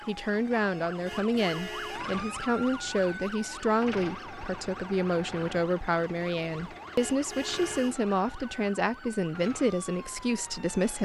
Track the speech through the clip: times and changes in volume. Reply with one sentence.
You can hear the speech from 0.1 to 11.0 s, at a steady volume.